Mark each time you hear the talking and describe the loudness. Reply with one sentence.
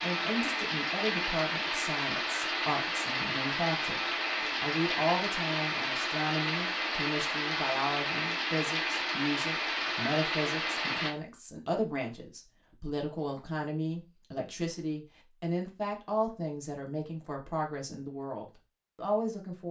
You can hear the talking from 0.0 to 19.6 s, at a steady volume.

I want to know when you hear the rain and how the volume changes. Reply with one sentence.
You can hear the rain from 0.0 to 11.1 s, at a steady volume.